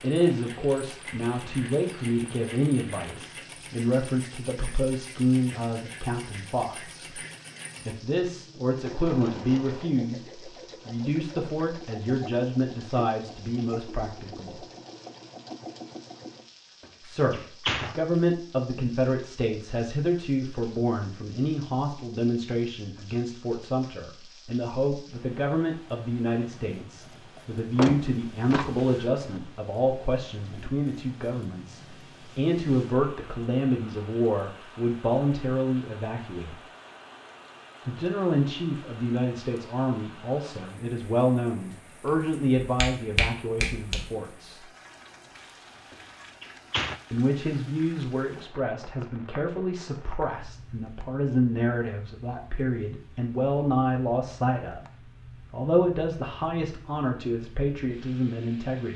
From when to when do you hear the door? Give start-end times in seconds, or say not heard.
16.8-17.9, 27.6-29.4, 45.9-47.0.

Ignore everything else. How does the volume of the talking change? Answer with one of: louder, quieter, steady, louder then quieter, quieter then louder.
steady.